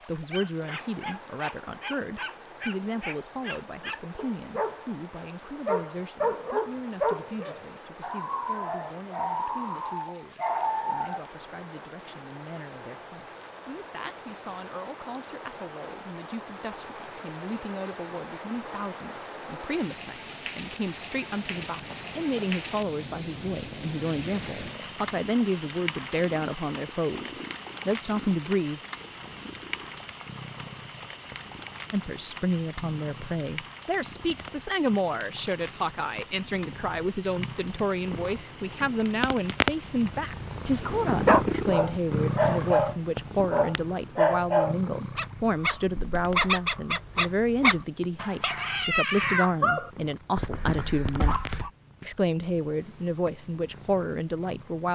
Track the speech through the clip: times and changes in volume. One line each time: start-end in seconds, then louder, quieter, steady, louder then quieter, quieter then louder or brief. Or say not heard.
0.1-28.8 quieter then louder
31.9-54.9 steady.